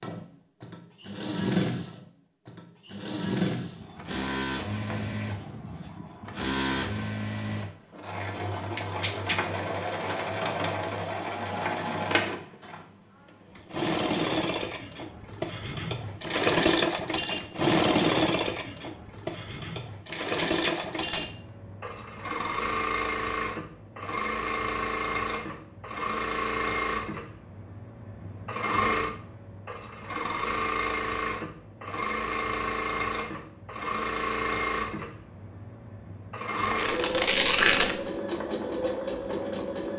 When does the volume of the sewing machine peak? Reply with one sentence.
The volume of the sewing machine peaks at 18 seconds.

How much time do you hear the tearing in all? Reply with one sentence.
You can hear the tearing for 3 seconds altogether.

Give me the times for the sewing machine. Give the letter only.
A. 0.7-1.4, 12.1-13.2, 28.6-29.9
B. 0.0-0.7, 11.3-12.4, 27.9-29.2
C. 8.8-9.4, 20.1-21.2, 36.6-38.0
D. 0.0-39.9
D.